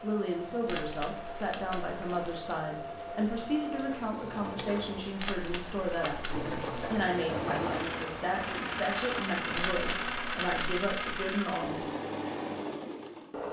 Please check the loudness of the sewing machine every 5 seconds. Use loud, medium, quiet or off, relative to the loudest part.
medium, loud, loud.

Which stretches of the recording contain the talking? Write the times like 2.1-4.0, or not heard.
0.0-11.8.